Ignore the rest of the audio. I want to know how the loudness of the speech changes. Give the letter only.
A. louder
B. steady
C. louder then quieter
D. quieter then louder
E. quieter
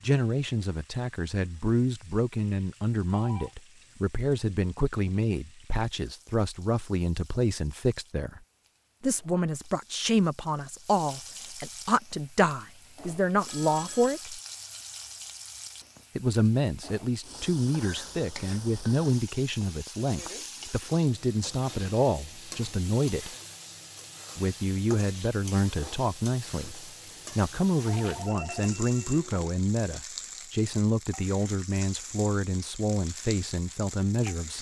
B.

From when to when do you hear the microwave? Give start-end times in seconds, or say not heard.
not heard.